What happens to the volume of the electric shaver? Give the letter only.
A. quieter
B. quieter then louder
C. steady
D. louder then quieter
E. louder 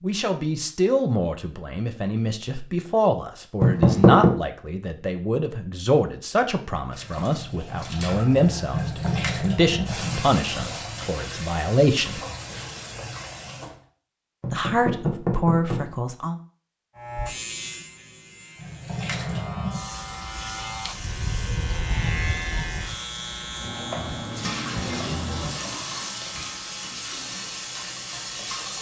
D.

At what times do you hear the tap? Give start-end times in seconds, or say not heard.
6.8-13.8, 18.6-28.7.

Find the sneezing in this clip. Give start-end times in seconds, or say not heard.
not heard.